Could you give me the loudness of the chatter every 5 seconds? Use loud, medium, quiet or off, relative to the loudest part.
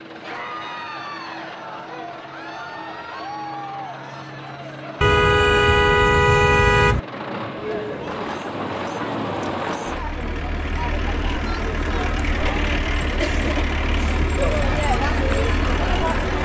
medium, medium, loud, loud.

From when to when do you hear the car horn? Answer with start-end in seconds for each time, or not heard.
5.0-7.0.